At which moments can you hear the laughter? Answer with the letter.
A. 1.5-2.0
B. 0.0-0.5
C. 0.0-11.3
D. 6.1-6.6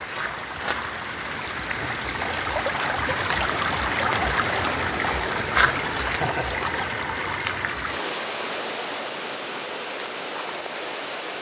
D.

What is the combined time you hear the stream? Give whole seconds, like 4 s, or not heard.
11 s.